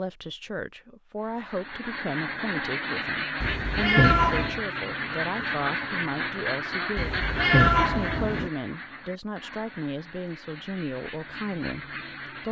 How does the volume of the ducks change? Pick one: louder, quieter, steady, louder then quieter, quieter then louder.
quieter.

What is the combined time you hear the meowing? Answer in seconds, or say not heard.
3 s.